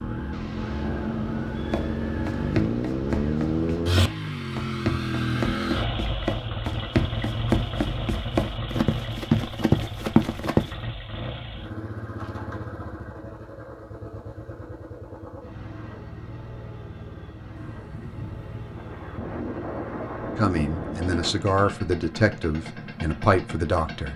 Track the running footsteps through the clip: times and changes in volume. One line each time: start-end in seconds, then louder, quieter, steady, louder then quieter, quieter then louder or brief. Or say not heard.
1.5-10.7 louder.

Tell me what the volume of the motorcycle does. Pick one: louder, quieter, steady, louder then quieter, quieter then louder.
quieter.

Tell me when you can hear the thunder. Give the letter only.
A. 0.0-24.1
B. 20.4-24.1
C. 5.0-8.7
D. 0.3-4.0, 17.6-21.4
D.